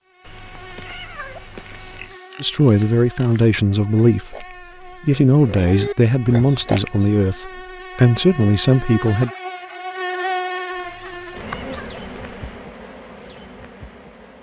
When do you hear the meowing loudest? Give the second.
1 s.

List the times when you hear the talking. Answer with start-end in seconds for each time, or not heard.
2.4-9.3.